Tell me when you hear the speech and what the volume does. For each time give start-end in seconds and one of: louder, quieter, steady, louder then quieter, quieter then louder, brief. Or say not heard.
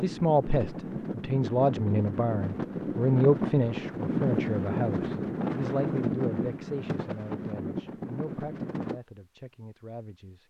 0.0-10.4 quieter.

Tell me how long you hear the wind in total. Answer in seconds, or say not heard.
9 s.